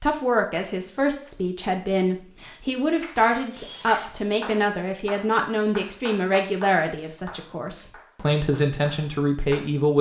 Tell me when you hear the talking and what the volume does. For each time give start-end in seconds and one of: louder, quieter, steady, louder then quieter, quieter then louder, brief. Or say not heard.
0.0-9.9 steady.